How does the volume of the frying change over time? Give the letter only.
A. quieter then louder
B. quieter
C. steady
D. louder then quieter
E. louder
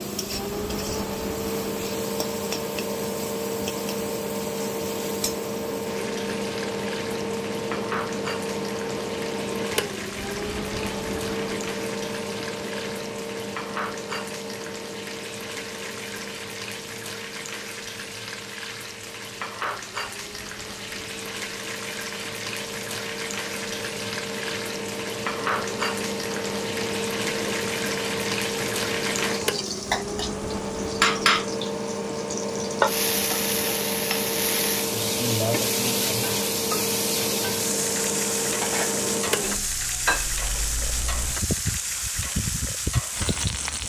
E.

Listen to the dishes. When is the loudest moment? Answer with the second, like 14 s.
40 s.